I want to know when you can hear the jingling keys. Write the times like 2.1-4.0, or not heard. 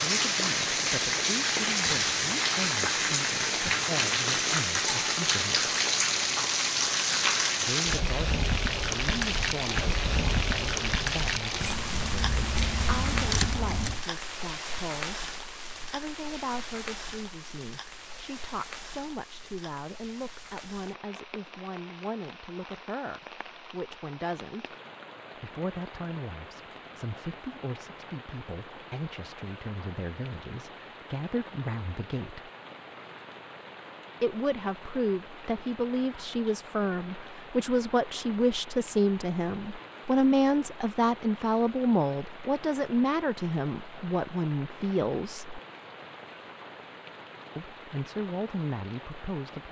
11.6-14.0.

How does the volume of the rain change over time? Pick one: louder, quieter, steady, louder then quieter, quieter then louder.
quieter.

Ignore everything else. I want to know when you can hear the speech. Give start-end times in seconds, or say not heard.
0.0-5.8, 7.5-24.8, 25.4-32.5, 34.2-45.6, 47.5-49.6.